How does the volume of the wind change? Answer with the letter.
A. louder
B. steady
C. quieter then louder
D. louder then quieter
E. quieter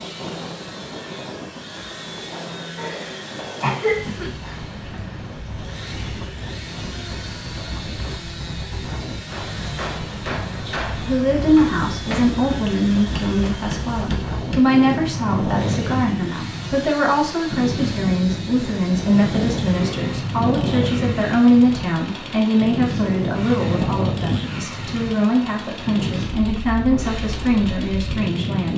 A.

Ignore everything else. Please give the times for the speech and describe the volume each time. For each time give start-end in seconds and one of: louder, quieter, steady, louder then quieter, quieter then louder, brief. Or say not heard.
10.5-28.7 steady.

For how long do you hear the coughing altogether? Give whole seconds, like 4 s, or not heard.
2 s.